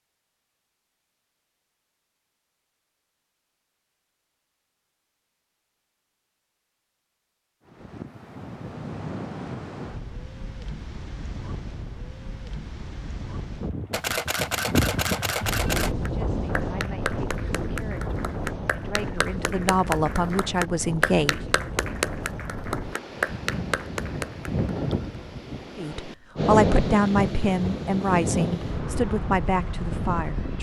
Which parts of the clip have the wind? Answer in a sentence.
The wind can be heard from 7.7 to 30.5 s.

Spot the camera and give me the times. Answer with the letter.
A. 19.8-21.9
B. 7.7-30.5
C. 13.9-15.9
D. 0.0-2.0
C.